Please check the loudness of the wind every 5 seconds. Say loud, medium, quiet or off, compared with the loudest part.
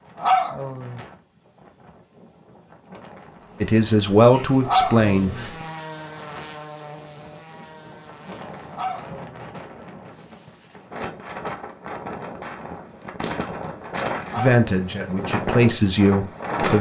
quiet, quiet, medium, loud.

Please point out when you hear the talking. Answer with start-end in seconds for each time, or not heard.
3.6-5.5, 14.3-16.7.